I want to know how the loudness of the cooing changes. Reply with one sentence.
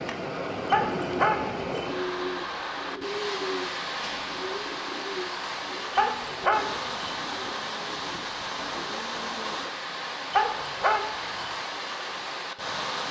The loudness of the cooing goes down.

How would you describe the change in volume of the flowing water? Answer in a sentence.
The loudness of the flowing water stays about the same.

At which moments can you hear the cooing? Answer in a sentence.
You can hear the cooing from 0.8 to 9.7 s.